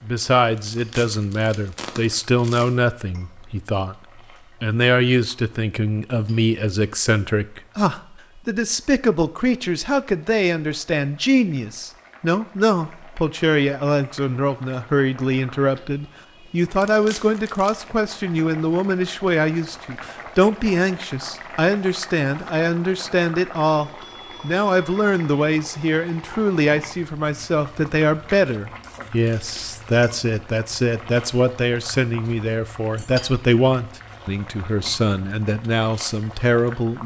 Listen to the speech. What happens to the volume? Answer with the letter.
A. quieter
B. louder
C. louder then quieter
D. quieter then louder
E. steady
E.